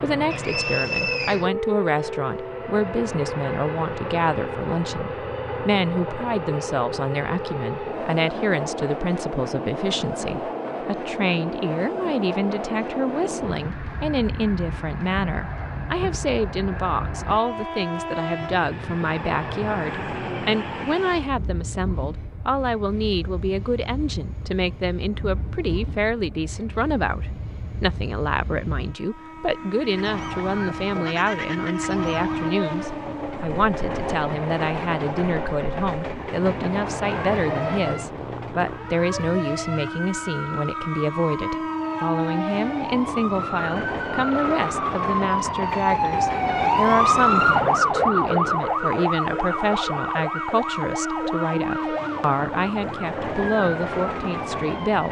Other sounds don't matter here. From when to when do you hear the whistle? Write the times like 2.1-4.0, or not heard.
0.3-1.4.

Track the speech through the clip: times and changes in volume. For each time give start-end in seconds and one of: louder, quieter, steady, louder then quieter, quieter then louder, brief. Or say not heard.
0.0-55.0 steady.